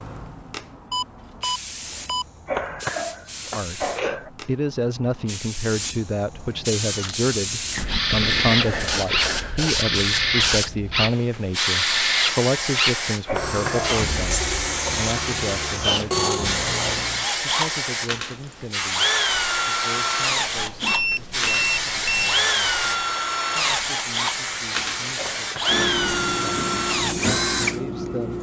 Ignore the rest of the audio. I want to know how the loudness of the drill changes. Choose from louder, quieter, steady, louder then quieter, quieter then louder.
steady.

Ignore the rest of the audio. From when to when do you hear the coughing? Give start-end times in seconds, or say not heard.
2.5-4.3, 13.2-13.9, 25.1-25.8.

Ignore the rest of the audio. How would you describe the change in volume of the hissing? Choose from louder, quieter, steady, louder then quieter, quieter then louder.
louder.